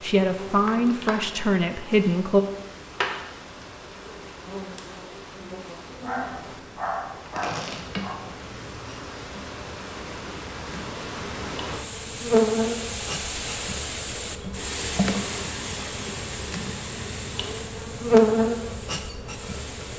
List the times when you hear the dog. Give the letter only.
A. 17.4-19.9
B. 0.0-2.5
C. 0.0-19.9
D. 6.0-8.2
D.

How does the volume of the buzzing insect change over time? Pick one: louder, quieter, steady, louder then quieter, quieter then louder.
quieter then louder.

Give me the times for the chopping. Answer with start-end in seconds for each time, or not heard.
not heard.